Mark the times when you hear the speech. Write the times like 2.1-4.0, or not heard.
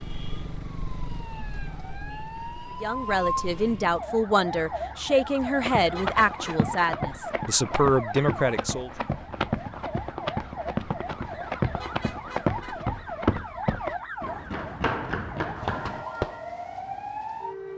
2.8-8.9.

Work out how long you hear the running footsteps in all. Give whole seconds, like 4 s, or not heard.
11 s.